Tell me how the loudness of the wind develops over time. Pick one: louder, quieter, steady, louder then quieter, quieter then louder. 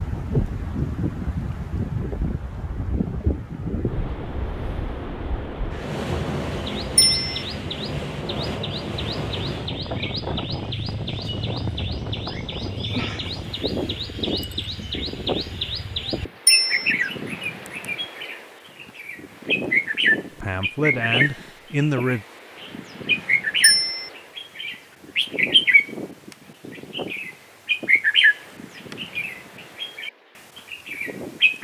quieter.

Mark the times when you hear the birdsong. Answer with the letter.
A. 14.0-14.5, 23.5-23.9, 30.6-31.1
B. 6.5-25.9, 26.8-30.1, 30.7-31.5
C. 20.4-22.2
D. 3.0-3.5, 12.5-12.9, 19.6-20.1
B.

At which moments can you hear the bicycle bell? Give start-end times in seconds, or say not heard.
7.0-7.5, 16.4-16.9, 23.6-24.1.